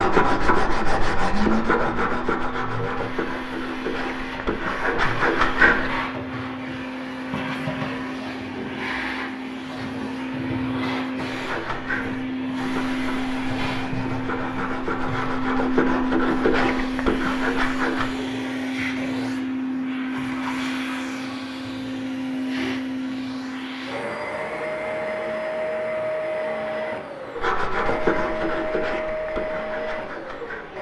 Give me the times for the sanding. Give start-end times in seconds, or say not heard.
0.0-6.0, 11.3-18.1, 27.4-30.7.